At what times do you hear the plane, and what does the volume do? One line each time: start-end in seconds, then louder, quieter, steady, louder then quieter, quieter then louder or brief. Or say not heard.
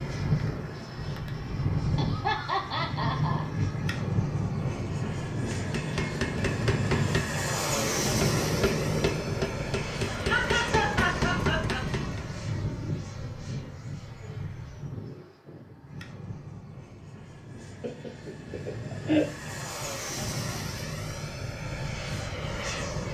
0.0-23.0 quieter then louder.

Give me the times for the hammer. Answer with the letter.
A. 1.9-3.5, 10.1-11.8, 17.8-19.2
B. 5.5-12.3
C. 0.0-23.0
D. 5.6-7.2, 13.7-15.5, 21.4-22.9
B.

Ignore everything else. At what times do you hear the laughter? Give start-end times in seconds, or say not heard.
1.9-3.5, 10.1-11.8, 17.8-19.2.